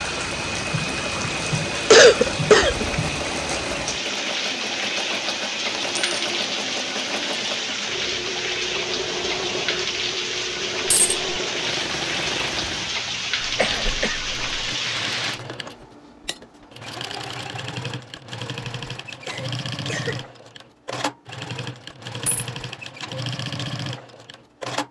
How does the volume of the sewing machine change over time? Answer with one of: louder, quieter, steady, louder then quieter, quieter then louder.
steady.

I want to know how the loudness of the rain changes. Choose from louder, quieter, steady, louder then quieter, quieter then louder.
steady.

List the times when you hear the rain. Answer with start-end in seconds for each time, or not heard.
0.0-15.4.